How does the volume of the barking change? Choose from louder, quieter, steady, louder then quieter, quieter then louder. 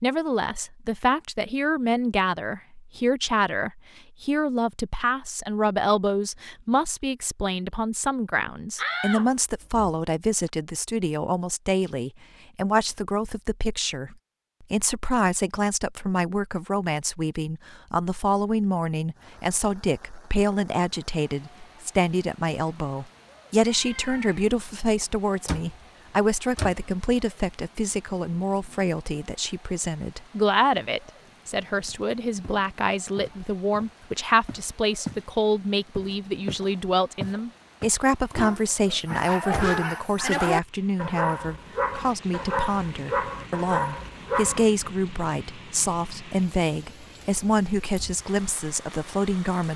steady.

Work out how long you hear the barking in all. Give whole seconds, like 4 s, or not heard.
6 s.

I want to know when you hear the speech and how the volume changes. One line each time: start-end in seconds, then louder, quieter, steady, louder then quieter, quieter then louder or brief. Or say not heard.
0.0-49.7 steady.